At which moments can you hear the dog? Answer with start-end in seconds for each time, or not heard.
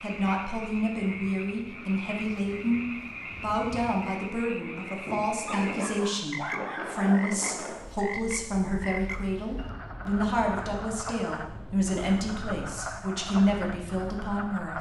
5.5-7.3.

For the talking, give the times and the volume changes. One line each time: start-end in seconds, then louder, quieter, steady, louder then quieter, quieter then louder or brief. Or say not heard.
0.0-14.7 steady.